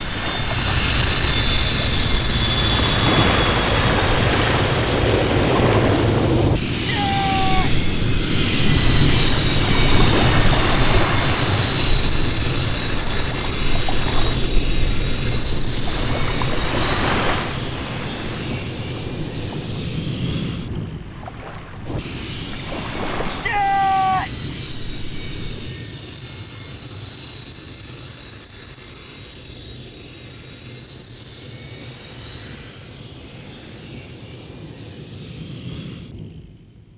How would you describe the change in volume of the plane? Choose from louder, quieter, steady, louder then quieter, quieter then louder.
quieter.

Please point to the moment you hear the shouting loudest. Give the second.
24 s.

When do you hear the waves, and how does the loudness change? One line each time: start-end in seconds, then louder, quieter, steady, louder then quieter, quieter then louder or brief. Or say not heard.
0.0-25.7 quieter.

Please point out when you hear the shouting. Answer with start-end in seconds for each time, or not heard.
6.8-7.8, 23.2-24.4.